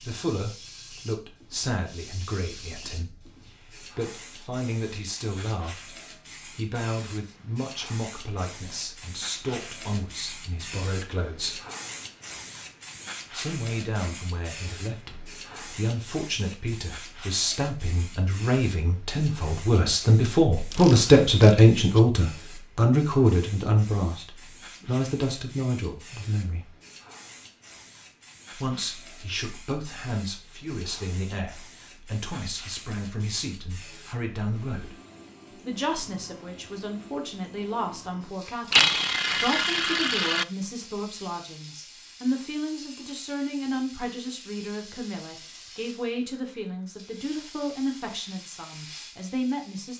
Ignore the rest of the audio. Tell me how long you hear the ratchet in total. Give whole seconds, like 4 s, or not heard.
3 s.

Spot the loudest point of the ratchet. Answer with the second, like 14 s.
39 s.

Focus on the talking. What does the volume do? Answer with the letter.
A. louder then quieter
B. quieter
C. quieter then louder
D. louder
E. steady
A.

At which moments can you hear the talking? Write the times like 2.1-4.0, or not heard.
0.0-11.6, 13.3-26.7, 28.5-35.0, 35.6-49.9.